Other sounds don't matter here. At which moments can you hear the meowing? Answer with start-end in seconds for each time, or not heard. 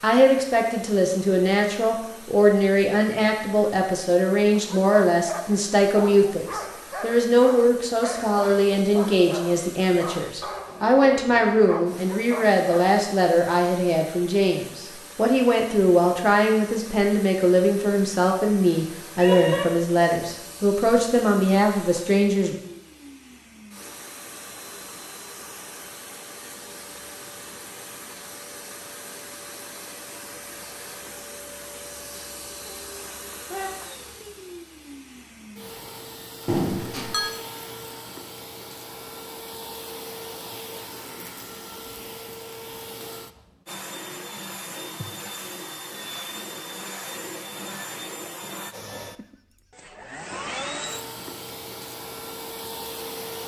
19.2-19.6, 32.6-33.7.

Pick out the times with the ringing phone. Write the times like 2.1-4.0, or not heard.
36.5-37.4.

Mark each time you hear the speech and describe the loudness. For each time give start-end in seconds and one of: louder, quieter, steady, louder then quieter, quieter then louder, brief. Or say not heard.
0.0-22.6 steady.